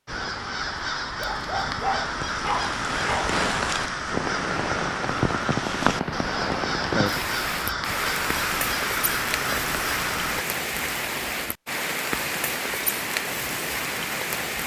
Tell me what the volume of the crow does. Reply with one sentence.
The volume of the crow stays about the same.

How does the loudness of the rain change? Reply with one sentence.
The loudness of the rain stays about the same.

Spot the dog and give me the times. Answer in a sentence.
You can hear the dog from 1.1 to 3.3 s.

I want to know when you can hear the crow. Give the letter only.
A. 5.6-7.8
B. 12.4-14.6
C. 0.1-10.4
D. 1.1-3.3
C.